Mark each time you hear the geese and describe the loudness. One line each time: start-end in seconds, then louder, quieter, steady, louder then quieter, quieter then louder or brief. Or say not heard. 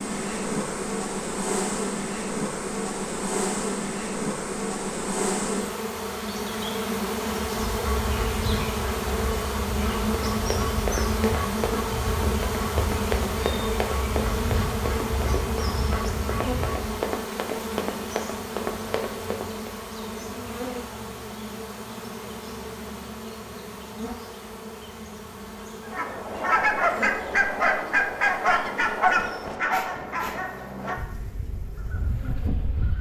7.5-17.1 steady
25.9-32.9 quieter.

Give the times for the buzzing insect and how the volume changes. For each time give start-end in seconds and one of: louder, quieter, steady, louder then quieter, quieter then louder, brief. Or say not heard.
0.0-32.9 quieter.